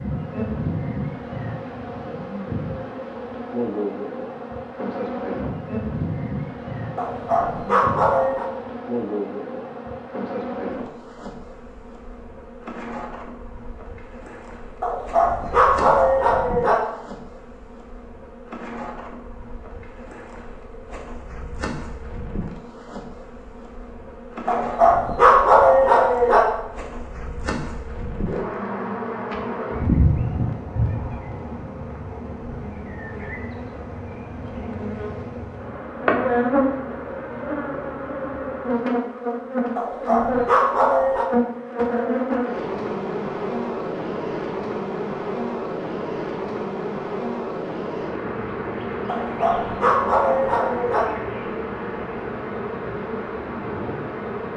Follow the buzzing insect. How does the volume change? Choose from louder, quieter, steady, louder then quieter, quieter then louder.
quieter then louder.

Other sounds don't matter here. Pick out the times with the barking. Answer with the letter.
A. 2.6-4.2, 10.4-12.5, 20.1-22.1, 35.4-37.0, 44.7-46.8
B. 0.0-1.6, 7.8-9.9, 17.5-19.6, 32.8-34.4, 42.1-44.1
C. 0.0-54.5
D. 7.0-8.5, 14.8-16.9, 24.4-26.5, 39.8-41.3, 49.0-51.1
D.